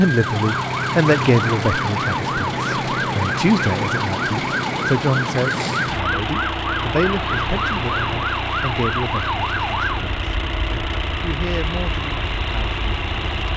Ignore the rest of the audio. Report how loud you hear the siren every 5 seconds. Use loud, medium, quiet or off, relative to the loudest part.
loud, loud, quiet.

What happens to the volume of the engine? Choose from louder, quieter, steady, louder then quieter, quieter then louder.
steady.